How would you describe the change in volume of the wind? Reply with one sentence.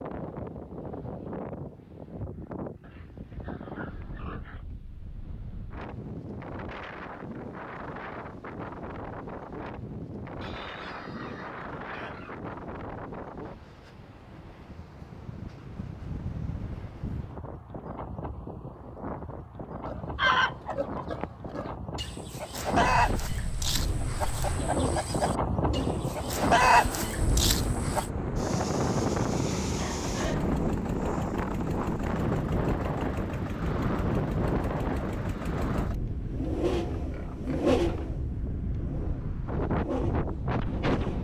The loudness of the wind goes up.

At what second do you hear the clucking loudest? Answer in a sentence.
The loudest moment of the clucking is at 27 seconds.